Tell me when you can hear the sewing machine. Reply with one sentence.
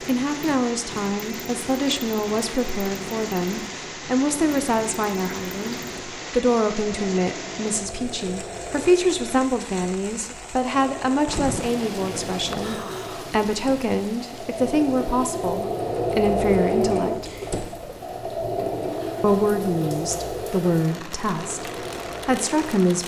You can hear the sewing machine from 0.0 to 22.8 s.